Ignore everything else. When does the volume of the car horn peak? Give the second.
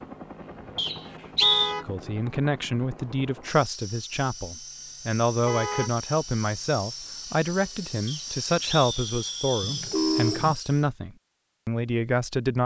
10 s.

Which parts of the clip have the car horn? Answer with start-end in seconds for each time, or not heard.
1.4-1.9, 5.5-5.9, 9.6-10.6.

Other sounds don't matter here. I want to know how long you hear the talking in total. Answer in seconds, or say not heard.
11 s.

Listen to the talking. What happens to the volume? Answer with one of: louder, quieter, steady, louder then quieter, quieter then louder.
steady.